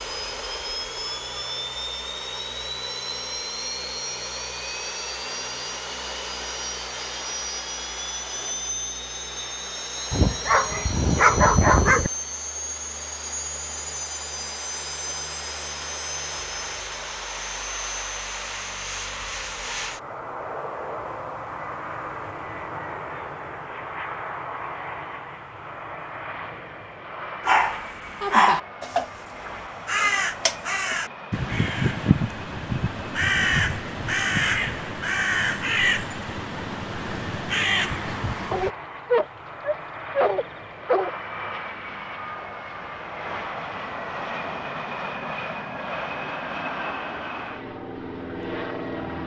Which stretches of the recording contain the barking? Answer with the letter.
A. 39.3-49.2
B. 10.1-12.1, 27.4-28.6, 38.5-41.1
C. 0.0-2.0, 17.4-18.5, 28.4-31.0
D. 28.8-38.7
B.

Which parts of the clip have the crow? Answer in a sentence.
The crow can be heard from 28.8 to 38.7 s.